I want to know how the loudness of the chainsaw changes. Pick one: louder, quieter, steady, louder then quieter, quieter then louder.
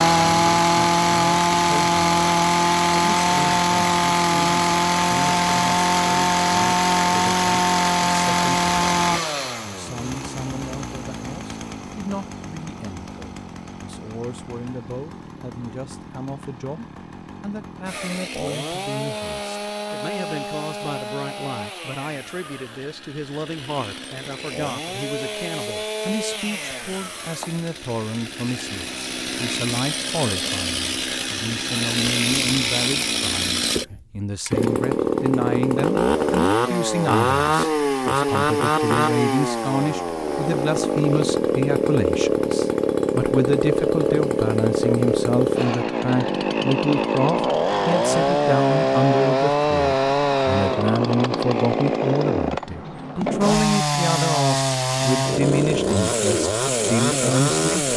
quieter then louder.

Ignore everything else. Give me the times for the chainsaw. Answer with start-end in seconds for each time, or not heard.
0.0-57.9.